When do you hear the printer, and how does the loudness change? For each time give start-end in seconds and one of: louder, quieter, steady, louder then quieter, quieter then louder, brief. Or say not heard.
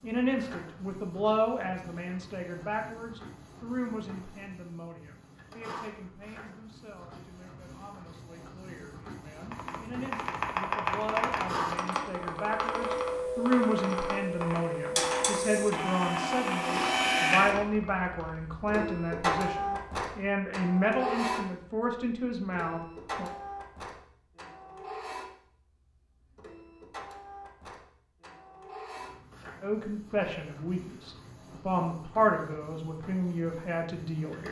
0.0-34.4 louder then quieter.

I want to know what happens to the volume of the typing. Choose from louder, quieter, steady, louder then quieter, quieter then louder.
quieter.